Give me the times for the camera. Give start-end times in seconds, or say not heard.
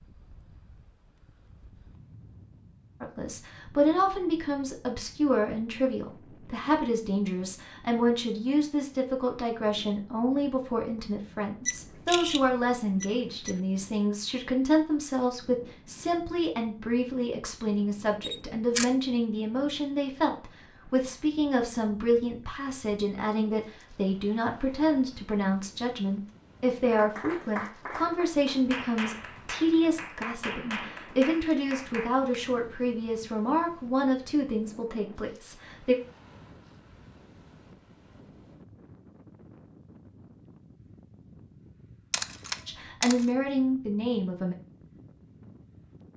11.7-13.6, 18.2-18.9, 42.1-43.2.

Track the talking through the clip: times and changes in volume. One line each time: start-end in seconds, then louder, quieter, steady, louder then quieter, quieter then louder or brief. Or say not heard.
3.0-36.0 steady
42.6-44.5 brief.